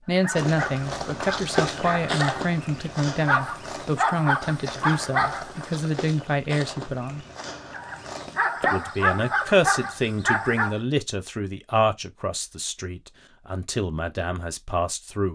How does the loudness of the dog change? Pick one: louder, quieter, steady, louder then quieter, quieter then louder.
louder.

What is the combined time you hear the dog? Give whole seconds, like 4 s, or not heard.
9 s.